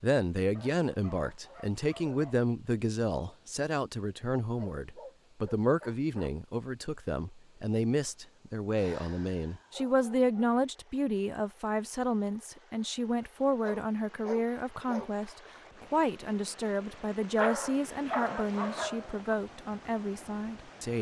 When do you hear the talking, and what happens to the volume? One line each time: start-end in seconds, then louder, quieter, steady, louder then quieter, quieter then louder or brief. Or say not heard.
0.0-20.9 steady.